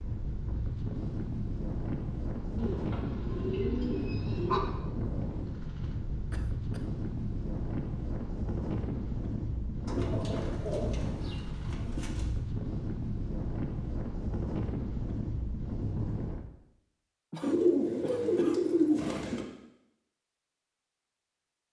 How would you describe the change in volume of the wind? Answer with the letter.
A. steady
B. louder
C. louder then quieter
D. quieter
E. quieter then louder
A.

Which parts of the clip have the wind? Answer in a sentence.
You can hear the wind from 0.0 to 16.5 s.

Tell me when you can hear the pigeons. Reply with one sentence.
You can hear the pigeons from 2.5 to 4.6 s, from 9.8 to 12.3 s and from 17.4 to 19.4 s.